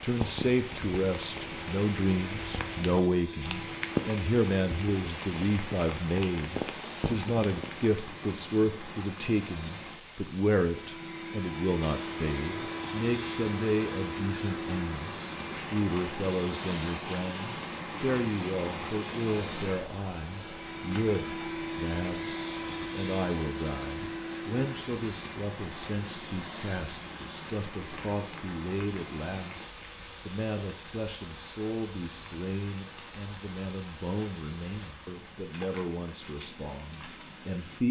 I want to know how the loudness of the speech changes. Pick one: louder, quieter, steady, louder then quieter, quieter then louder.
quieter.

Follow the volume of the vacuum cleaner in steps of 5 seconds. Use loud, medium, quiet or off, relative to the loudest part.
medium, medium, loud, loud, loud, medium, medium, off.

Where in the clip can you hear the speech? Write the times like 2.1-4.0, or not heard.
0.0-37.8.